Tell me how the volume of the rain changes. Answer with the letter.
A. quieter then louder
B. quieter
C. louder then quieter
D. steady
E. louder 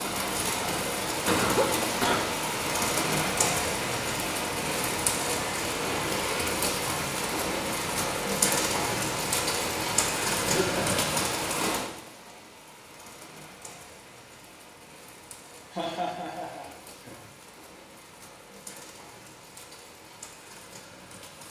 B.